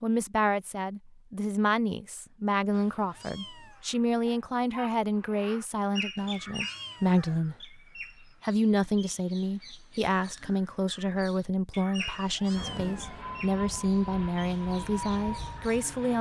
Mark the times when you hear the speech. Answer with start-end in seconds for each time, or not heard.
0.0-7.8, 8.4-16.1.